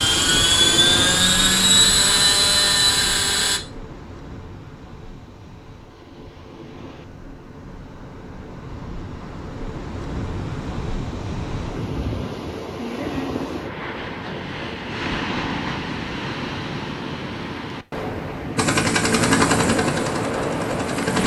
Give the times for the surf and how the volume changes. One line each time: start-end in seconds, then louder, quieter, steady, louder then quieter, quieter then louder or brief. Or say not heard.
0.0-21.2 quieter then louder.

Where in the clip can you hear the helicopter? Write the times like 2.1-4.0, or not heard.
0.0-3.6, 18.6-21.2.